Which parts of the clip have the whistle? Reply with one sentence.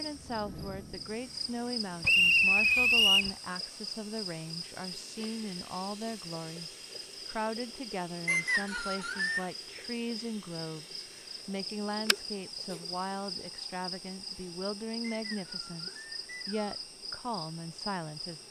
You can hear the whistle from 2.0 to 3.3 s, from 8.2 to 9.4 s and from 15.1 to 16.8 s.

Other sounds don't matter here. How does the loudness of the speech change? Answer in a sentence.
The loudness of the speech stays about the same.